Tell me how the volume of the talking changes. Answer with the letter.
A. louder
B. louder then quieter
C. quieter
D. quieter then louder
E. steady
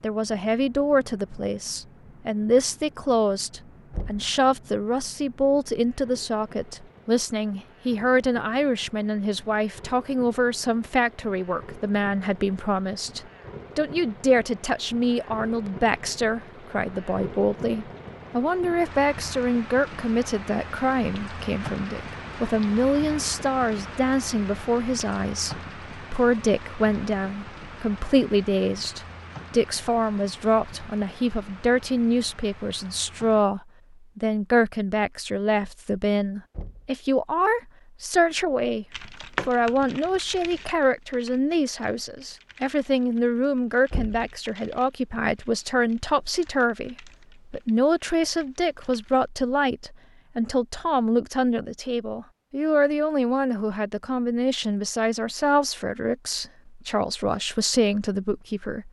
E.